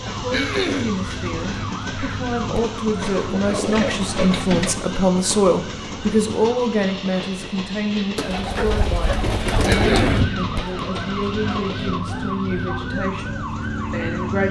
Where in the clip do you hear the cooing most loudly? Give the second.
10 s.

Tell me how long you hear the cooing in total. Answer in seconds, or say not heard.
4 s.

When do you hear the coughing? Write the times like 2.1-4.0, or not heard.
0.3-1.0, 9.7-10.3.